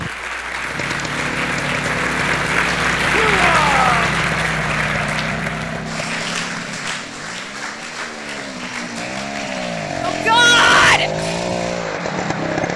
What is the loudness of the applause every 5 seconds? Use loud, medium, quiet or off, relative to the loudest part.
loud, medium, medium.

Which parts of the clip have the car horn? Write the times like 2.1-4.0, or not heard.
not heard.